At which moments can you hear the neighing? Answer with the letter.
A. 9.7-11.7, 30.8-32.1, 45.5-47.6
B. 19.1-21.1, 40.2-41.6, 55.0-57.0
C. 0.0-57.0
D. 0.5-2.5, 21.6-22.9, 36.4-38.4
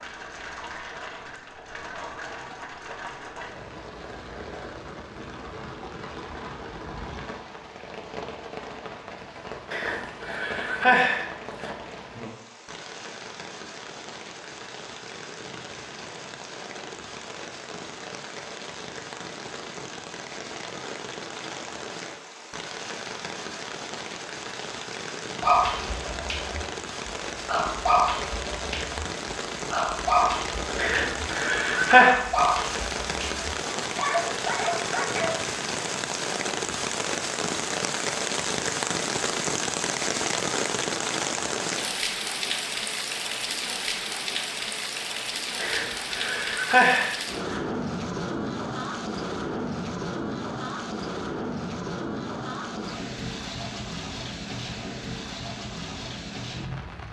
A.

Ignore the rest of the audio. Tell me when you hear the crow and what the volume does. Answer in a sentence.
The crow can't be heard in this clip.